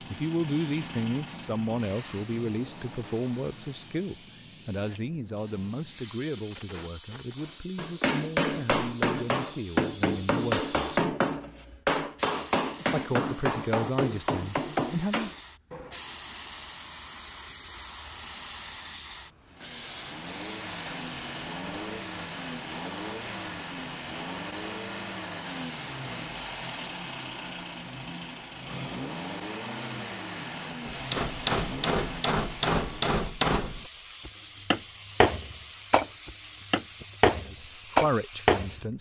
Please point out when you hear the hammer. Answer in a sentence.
The hammer can be heard from 7.4 to 16.0 s and from 30.9 to 38.8 s.